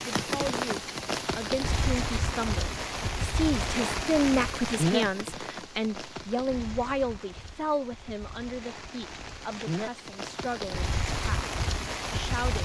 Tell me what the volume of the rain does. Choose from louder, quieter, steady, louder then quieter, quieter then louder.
quieter then louder.